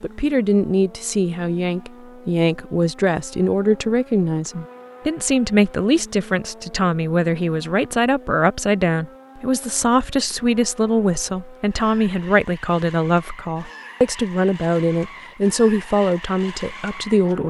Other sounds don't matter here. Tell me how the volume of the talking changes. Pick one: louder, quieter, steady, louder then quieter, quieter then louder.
steady.